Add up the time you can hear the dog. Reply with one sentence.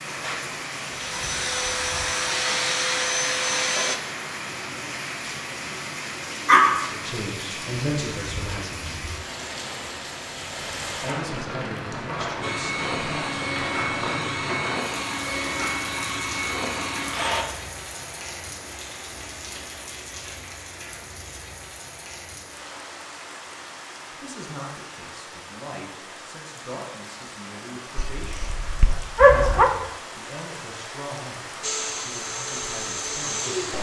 You can hear the dog for 2 seconds altogether.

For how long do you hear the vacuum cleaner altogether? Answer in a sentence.
You can hear the vacuum cleaner for 11 seconds altogether.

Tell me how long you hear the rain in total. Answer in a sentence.
You can hear the rain for 34 seconds altogether.